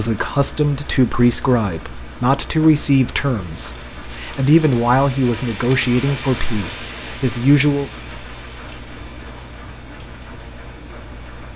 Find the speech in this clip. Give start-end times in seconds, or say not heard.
0.0-7.9.